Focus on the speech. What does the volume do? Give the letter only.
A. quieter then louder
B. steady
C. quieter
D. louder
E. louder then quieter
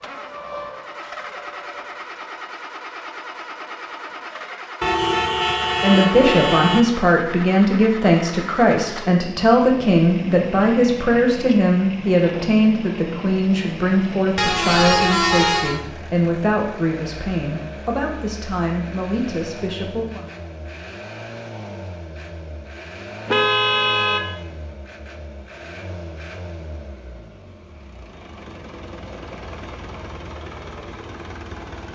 C.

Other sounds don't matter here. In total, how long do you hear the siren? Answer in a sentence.
The siren can be heard for 2 seconds in total.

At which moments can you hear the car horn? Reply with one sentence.
You can hear the car horn from 4.8 to 6.8 s, from 14.3 to 15.8 s and from 23.2 to 24.3 s.